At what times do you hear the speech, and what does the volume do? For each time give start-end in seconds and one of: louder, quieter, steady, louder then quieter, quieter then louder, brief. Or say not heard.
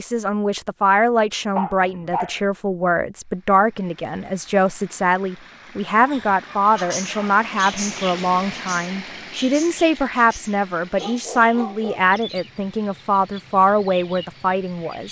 0.0-15.0 steady.